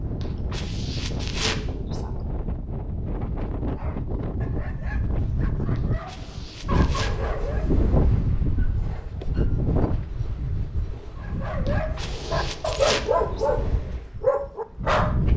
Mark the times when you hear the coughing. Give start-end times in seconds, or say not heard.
0.2-2.1, 5.8-7.2, 11.7-13.6.